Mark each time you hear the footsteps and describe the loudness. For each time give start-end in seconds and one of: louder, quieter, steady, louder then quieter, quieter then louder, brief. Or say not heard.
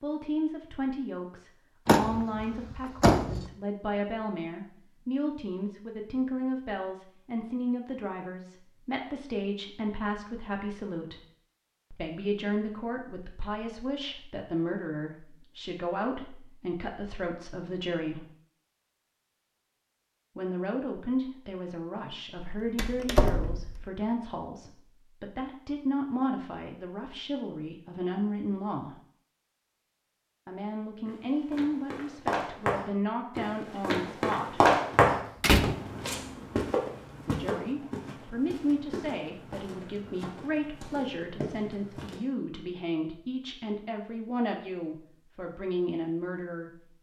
31.1-42.2 louder then quieter.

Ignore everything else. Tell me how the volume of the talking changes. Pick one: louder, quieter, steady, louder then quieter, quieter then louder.
steady.